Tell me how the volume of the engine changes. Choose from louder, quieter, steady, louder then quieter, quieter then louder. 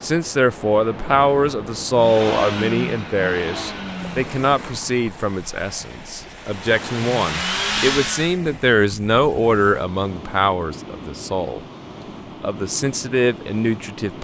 quieter then louder.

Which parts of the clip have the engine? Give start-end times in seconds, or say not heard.
1.9-8.4.